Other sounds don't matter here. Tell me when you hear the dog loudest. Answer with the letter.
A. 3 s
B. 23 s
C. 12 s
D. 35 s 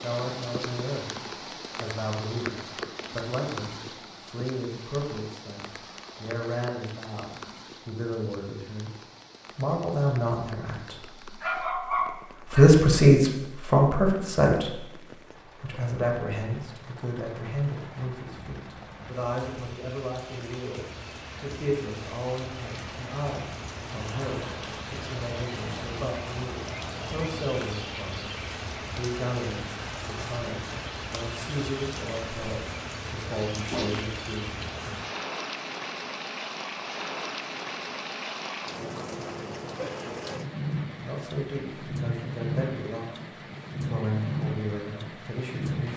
C.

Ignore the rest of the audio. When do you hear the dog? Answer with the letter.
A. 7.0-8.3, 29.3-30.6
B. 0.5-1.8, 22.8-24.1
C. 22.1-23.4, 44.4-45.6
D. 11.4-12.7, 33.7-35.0
D.